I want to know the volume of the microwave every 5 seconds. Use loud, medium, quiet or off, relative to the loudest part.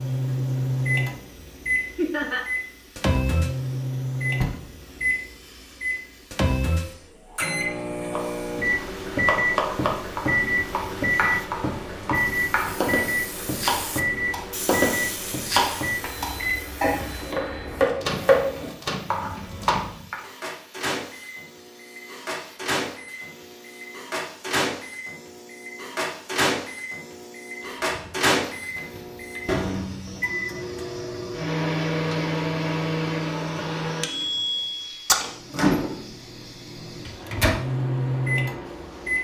loud, loud, loud, medium, medium, loud, loud, loud.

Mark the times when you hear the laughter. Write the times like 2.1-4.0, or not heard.
1.9-2.5.